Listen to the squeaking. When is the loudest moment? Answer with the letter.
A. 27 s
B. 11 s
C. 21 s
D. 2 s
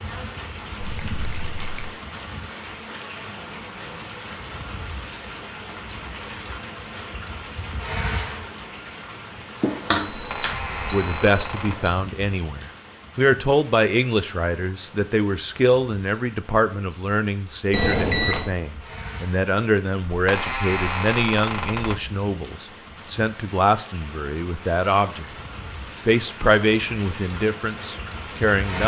C.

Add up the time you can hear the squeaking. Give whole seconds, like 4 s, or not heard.
5 s.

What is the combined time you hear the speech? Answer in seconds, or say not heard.
17 s.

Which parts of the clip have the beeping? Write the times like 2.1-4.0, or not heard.
9.6-11.9, 17.7-18.5.